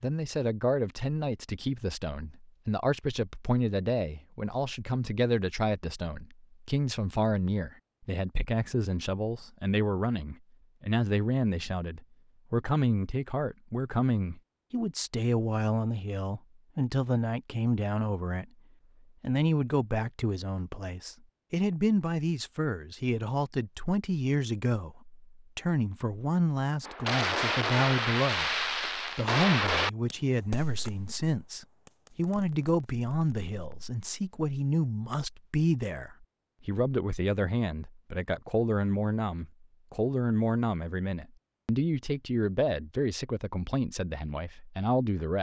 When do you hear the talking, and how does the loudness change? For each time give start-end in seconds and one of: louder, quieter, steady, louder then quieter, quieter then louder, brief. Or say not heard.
0.0-18.4 steady
19.2-45.3 steady.